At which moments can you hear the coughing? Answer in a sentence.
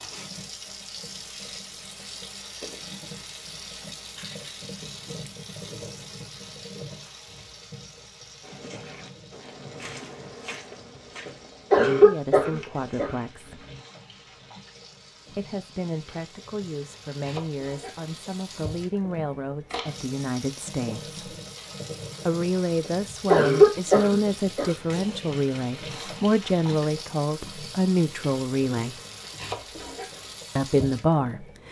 The coughing can be heard from 11.2 to 13.2 s and from 22.9 to 24.7 s.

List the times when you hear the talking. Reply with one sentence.
You can hear the talking from 11.7 to 13.7 s, from 15.3 to 21.1 s, from 22.2 to 29.0 s and from 30.6 to 31.6 s.